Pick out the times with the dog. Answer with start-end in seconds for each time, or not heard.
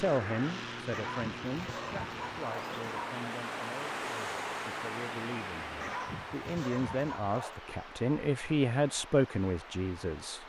0.9-3.1, 5.8-7.6.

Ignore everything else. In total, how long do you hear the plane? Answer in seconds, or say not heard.
6 s.